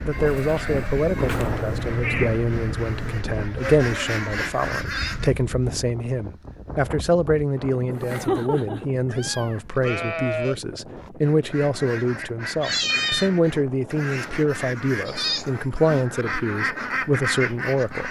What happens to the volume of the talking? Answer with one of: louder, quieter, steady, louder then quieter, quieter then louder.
steady.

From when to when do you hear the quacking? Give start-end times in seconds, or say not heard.
0.0-5.3, 11.2-18.0.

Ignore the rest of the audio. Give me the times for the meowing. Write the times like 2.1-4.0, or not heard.
1.2-3.2, 7.8-9.7, 12.6-13.3.